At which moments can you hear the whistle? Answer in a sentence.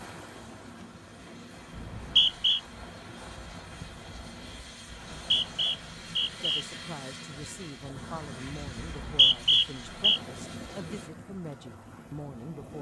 You can hear the whistle from 1.8 to 2.6 s, from 4.9 to 6.7 s and from 8.8 to 10.2 s.